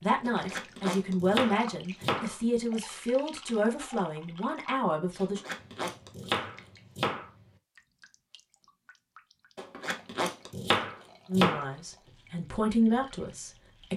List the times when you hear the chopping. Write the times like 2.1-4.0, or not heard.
0.2-2.4, 5.2-7.2, 9.6-11.7.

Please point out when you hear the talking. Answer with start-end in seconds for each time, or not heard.
0.0-5.4, 11.2-13.9.